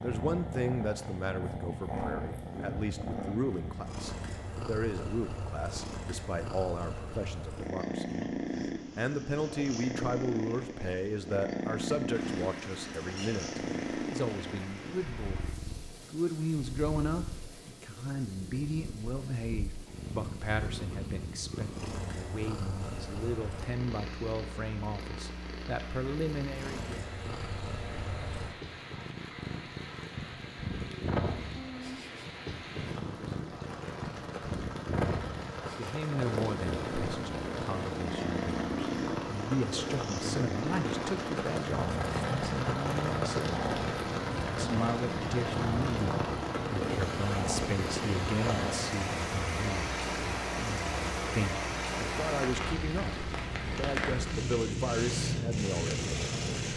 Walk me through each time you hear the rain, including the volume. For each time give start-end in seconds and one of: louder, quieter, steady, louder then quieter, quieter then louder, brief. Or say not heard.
12.1-56.7 louder.